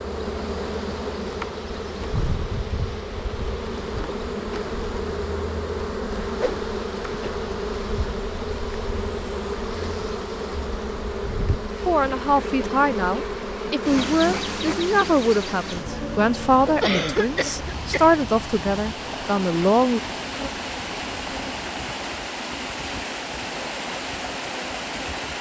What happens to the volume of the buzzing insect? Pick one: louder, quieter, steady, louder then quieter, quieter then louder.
quieter.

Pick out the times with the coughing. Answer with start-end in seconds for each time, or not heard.
16.8-18.1.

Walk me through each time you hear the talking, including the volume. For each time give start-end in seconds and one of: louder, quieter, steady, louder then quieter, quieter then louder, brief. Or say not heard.
11.8-20.0 steady.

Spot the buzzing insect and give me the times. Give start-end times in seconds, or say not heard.
0.0-25.3.